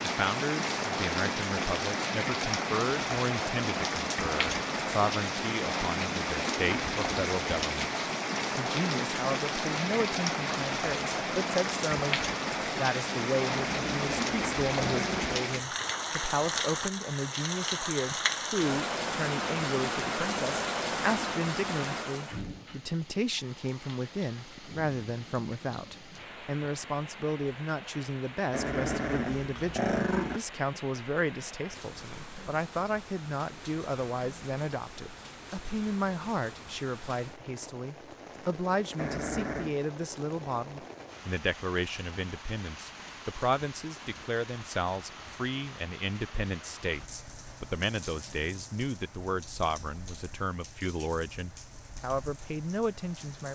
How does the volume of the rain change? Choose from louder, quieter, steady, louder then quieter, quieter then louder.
quieter.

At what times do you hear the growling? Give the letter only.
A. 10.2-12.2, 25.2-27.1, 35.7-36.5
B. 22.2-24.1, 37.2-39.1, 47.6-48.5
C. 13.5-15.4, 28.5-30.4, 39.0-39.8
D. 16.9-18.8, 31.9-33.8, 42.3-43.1
C.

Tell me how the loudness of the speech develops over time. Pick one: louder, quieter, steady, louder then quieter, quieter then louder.
steady.